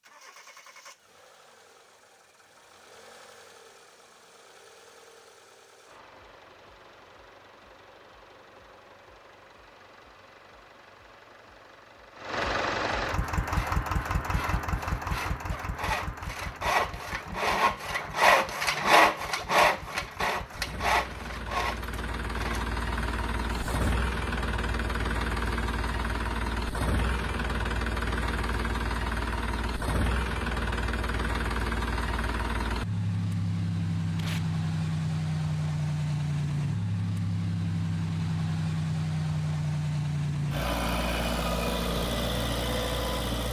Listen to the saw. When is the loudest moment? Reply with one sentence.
The loudest moment of the saw is at 19 seconds.